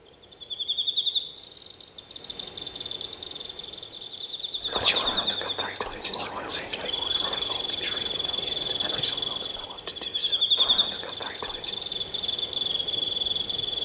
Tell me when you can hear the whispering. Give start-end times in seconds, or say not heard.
4.7-11.9.